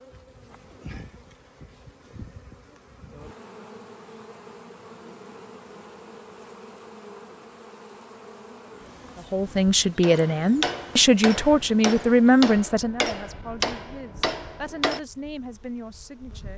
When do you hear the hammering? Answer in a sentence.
The hammering can be heard from 10.0 to 15.0 s.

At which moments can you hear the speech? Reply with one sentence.
The speech can be heard from 9.3 to 16.5 s.